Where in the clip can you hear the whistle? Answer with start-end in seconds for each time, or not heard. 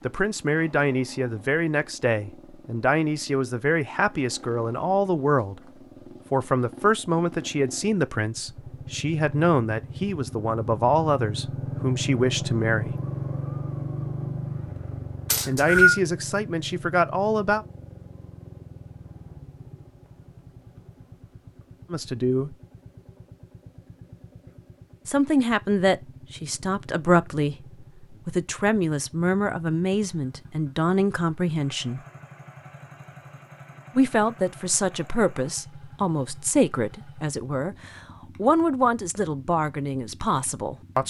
15.3-16.0.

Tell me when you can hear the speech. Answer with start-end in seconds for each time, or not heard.
0.1-5.6, 6.3-12.9, 15.4-17.6, 21.9-22.6, 25.1-32.0, 34.0-41.0.